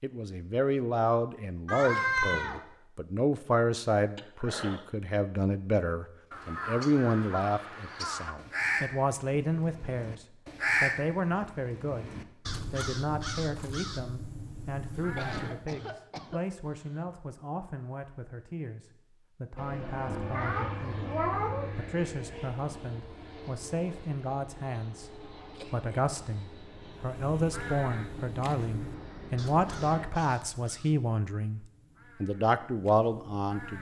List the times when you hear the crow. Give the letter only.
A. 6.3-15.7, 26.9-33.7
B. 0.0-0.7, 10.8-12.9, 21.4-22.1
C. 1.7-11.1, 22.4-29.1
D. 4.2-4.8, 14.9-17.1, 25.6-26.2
A.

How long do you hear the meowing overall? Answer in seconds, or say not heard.
3 s.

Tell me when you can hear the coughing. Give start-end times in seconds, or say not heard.
4.2-4.8, 14.9-17.1, 25.6-26.2.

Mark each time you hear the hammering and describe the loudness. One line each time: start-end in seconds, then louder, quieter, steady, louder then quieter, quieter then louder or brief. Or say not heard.
not heard.